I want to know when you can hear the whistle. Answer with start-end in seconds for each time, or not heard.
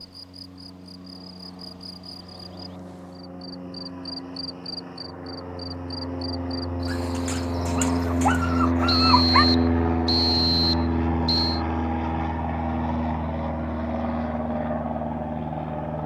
8.8-11.6.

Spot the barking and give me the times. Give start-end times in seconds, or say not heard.
6.8-9.4.